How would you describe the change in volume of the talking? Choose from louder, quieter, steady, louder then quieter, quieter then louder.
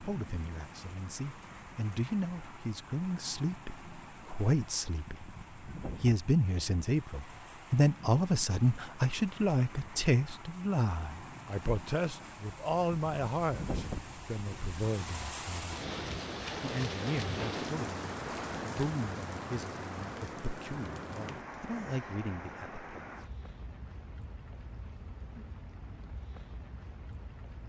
louder then quieter.